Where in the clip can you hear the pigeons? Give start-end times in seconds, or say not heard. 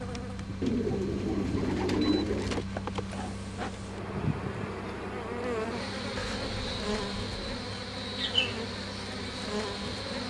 0.6-2.6, 6.2-7.7.